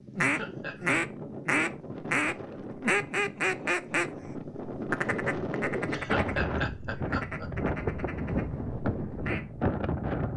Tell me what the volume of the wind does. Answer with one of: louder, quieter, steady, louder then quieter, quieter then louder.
louder.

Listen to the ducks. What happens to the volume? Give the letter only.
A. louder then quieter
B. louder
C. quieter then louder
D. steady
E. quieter
E.